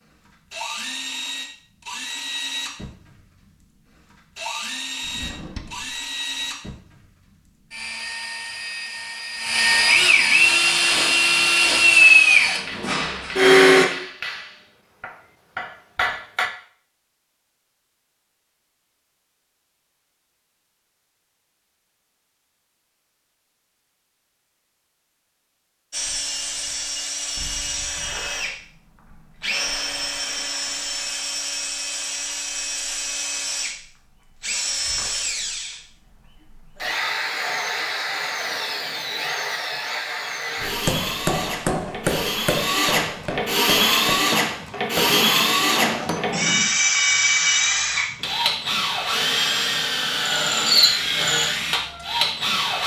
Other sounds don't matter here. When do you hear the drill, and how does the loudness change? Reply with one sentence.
The drill can be heard from 0.1 to 13.8 s, getting louder; and from 25.9 to 52.8 s, getting louder.